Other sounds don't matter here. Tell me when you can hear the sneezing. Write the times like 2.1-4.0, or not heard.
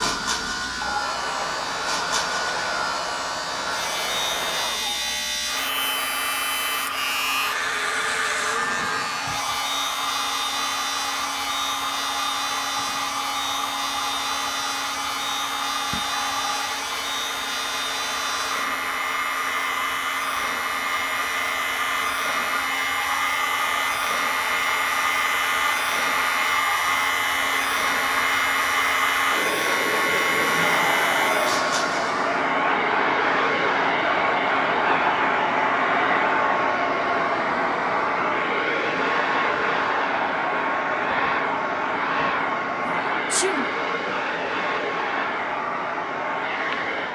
42.8-43.6.